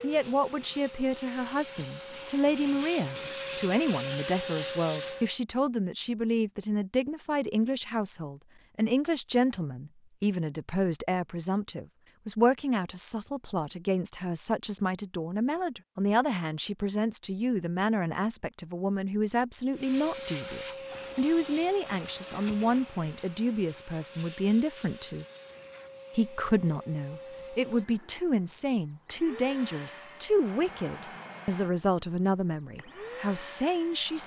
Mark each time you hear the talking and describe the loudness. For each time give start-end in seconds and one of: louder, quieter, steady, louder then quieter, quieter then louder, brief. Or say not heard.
0.0-25.2 steady
26.1-34.2 steady.